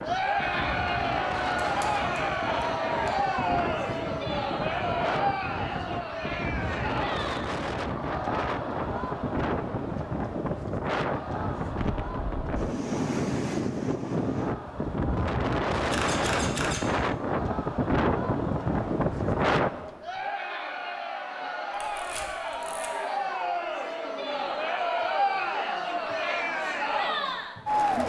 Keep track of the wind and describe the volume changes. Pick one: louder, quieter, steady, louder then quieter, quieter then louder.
louder.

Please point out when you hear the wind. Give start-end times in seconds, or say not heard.
0.0-19.7.